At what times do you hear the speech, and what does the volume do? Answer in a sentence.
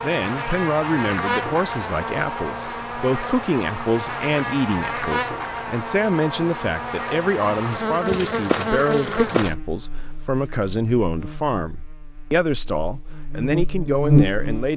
You can hear the speech from 0.0 to 14.7 s, at a steady volume.